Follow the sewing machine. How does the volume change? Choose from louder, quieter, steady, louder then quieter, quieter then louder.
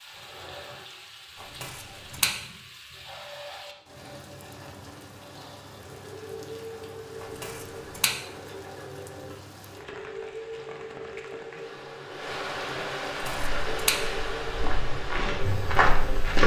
louder.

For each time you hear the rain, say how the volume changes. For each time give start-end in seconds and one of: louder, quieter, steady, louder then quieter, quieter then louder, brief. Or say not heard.
0.0-16.4 louder.